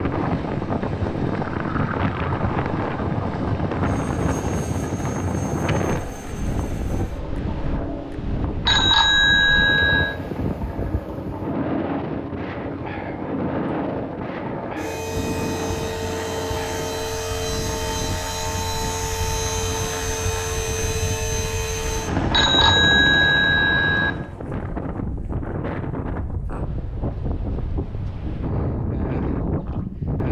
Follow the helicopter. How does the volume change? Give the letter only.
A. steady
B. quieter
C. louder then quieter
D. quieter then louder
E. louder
E.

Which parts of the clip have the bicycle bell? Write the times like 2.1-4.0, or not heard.
8.7-10.2, 22.3-24.1.